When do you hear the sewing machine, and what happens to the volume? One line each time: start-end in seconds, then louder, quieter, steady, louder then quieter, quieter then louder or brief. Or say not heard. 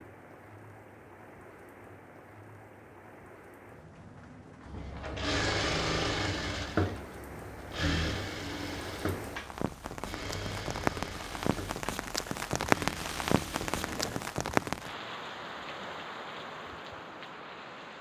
4.7-14.3 quieter.